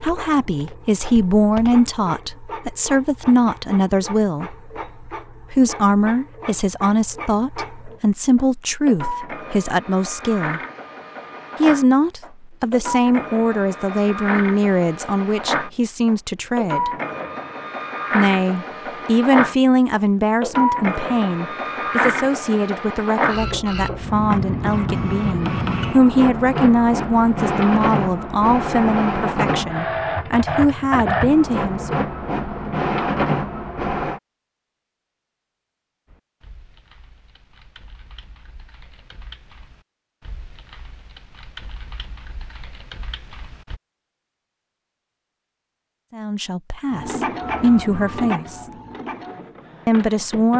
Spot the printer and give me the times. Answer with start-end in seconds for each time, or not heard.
0.0-34.2, 46.9-50.5.